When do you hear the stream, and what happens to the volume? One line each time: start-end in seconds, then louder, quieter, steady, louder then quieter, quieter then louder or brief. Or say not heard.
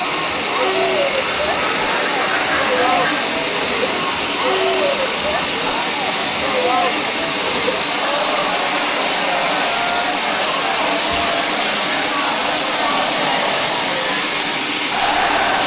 0.0-15.6 steady.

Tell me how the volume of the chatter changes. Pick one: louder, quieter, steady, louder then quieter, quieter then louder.
steady.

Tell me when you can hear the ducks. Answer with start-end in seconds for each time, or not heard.
1.1-3.1.